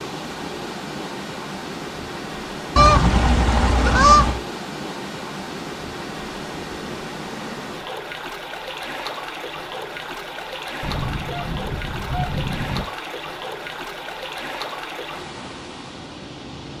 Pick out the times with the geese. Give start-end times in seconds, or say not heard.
2.8-4.4, 10.8-12.8.